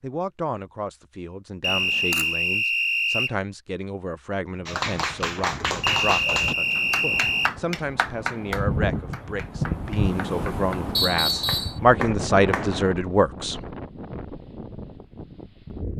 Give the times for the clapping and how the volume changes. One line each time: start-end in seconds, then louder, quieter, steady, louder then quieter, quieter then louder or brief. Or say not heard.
4.7-12.7 quieter then louder.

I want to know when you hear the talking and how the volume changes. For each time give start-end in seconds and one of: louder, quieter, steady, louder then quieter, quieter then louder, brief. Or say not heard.
0.0-13.6 louder.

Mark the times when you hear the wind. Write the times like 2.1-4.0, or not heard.
4.5-15.9.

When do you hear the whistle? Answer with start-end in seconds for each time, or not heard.
1.6-3.4, 5.8-7.5, 10.9-11.8.